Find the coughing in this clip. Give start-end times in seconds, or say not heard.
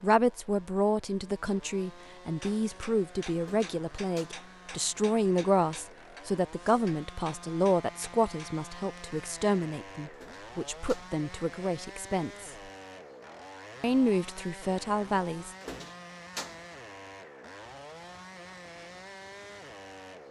not heard.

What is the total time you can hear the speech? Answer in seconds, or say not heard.
14 s.